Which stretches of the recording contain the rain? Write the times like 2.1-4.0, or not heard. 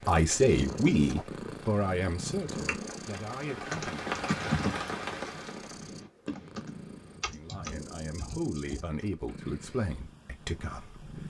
0.1-6.0.